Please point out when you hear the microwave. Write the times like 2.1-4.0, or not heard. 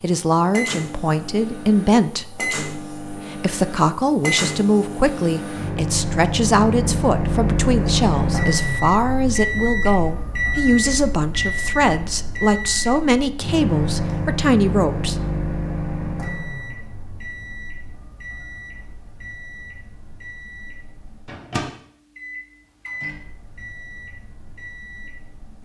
0.0-25.5.